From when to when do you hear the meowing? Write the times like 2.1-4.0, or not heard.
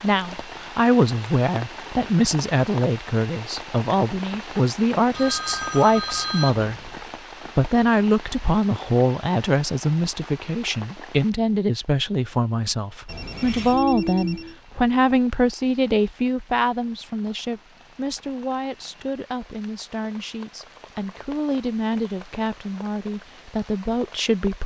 not heard.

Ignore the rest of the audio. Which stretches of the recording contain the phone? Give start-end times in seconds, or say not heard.
5.1-7.0, 13.1-14.6.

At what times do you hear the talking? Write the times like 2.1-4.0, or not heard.
0.0-6.9, 7.5-24.6.